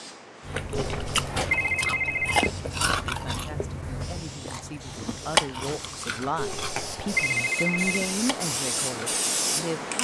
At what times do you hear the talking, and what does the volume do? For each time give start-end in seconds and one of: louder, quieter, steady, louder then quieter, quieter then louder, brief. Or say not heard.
3.0-9.9 louder then quieter.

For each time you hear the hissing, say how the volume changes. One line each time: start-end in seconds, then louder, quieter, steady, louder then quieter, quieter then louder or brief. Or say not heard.
0.0-9.9 louder.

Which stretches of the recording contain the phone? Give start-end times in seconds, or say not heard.
0.7-2.5, 6.3-8.1.